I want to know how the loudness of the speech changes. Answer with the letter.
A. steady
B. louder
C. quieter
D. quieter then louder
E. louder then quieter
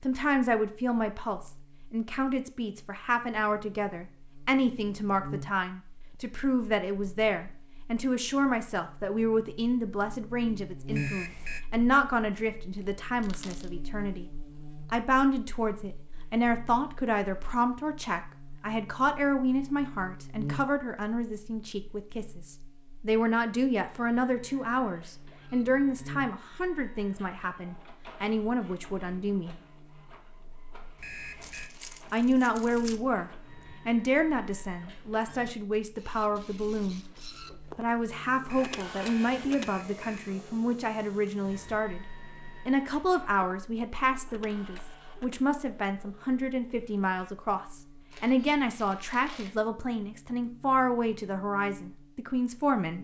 A.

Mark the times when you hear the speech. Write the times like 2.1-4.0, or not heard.
0.0-14.2, 14.9-29.6, 32.1-37.1, 37.8-42.0, 42.6-53.0.